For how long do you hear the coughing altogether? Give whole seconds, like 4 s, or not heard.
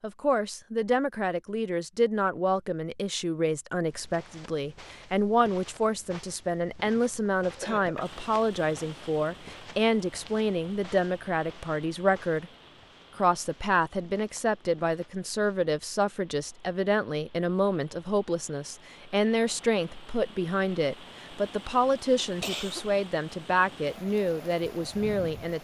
2 s.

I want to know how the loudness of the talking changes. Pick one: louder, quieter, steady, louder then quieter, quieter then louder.
steady.